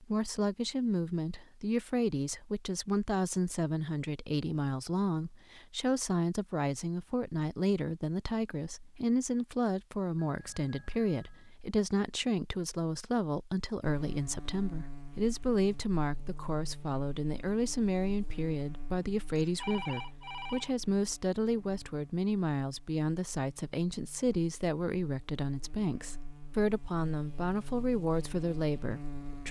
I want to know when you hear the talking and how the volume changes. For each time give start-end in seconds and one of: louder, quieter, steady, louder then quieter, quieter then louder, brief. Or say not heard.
0.0-29.4 steady.